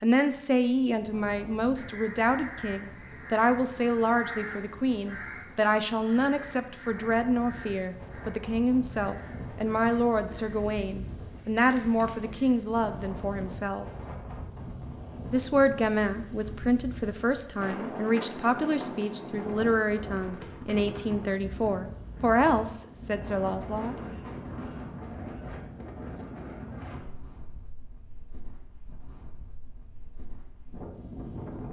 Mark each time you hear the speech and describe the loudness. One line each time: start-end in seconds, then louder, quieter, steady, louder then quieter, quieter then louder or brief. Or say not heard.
0.0-13.8 steady
15.3-23.9 steady.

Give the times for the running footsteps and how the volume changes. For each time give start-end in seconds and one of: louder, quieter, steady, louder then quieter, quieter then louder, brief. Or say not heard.
not heard.